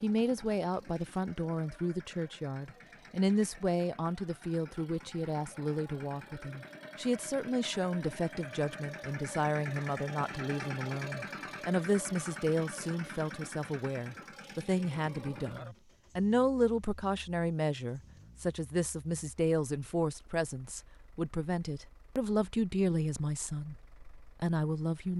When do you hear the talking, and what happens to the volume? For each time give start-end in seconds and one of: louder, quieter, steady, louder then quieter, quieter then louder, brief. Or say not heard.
0.0-25.1 steady.